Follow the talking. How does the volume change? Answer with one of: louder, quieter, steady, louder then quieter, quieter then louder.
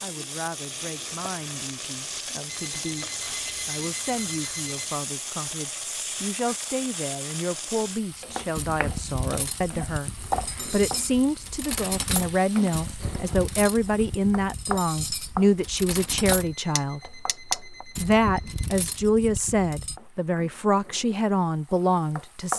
louder.